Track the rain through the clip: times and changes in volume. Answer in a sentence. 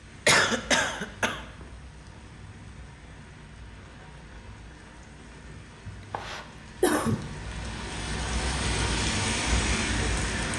The rain can be heard from 0.0 to 10.5 s, getting louder.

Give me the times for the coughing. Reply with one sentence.
You can hear the coughing from 0.2 to 1.4 s and from 5.8 to 7.2 s.